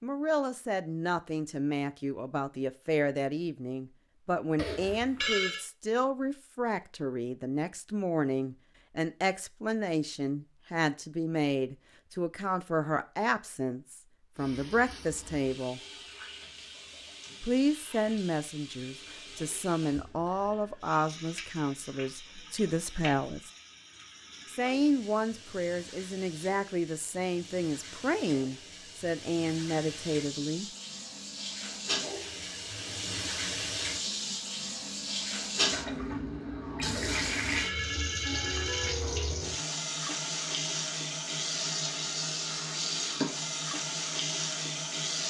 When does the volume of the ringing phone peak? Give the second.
5 s.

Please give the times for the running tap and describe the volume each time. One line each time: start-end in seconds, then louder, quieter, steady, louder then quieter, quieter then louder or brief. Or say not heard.
14.3-45.2 louder.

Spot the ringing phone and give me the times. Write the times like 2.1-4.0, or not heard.
4.5-5.7, 36.9-38.9.